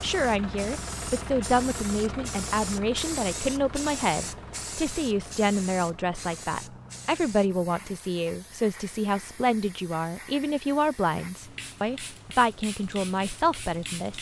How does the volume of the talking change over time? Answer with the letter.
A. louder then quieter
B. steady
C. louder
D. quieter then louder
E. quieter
B.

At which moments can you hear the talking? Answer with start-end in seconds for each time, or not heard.
0.0-14.1.